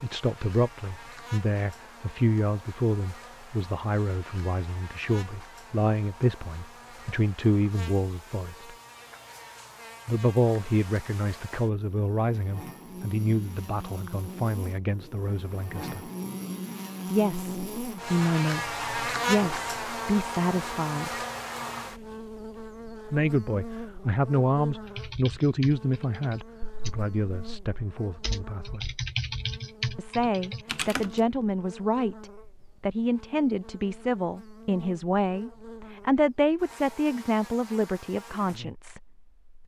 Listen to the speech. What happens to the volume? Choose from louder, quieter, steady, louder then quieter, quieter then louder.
steady.